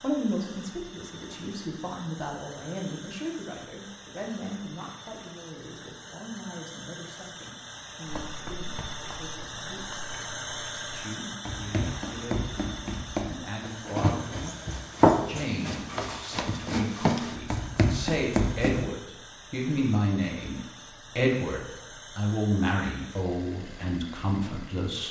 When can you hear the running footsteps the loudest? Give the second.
15 s.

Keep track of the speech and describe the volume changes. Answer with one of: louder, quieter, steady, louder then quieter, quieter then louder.
quieter then louder.